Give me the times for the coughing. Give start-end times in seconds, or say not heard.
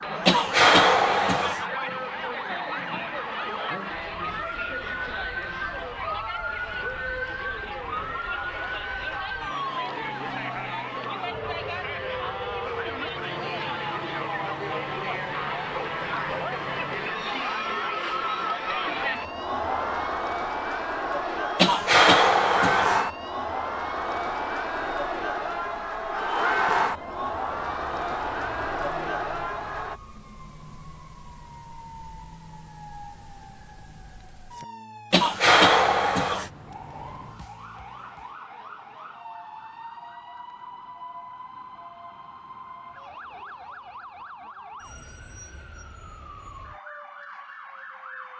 0.2-1.6, 21.6-23.0, 35.1-36.5.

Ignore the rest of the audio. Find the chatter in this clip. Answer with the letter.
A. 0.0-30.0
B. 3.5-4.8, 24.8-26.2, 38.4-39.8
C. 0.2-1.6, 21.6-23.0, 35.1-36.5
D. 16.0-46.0
A.